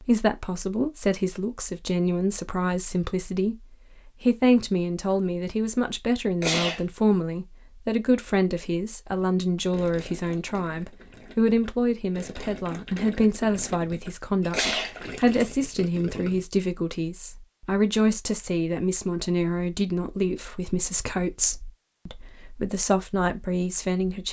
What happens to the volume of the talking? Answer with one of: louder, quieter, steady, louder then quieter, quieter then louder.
steady.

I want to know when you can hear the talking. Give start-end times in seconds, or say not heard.
0.0-24.2.